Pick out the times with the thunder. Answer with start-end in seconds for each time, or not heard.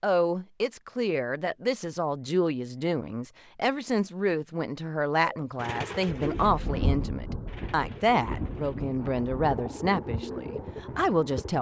6.2-9.6.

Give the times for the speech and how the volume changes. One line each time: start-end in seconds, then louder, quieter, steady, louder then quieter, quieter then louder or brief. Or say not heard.
0.0-11.5 steady.